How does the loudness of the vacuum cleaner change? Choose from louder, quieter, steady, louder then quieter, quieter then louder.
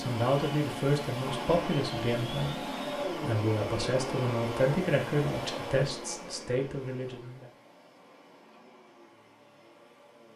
quieter.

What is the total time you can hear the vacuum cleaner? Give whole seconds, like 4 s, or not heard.
10 s.